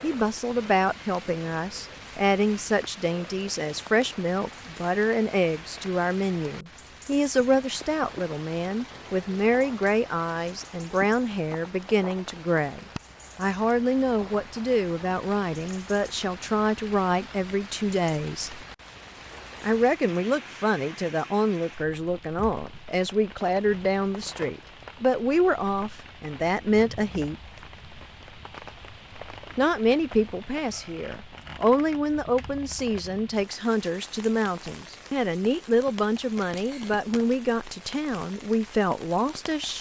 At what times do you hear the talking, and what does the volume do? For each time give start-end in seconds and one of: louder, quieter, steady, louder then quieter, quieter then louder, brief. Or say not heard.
0.0-18.6 steady
19.6-27.4 steady
29.6-39.7 steady.